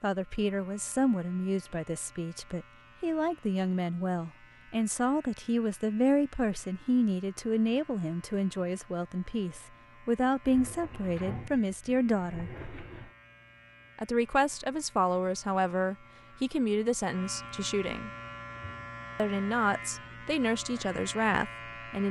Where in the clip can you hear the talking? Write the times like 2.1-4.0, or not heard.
0.0-12.5, 13.9-18.1, 19.1-22.0.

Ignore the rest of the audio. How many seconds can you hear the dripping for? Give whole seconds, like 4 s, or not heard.
not heard.